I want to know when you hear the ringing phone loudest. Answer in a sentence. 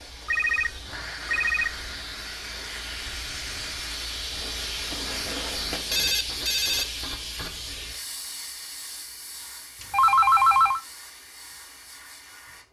The loudest moment of the ringing phone is at 10 seconds.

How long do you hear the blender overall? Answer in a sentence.
You can hear the blender for 6 seconds altogether.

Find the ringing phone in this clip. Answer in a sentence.
You can hear the ringing phone from 0.2 to 1.8 s, from 4.9 to 6.8 s and from 9.8 to 10.8 s.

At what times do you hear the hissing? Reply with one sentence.
You can hear the hissing from 0.0 to 12.6 s.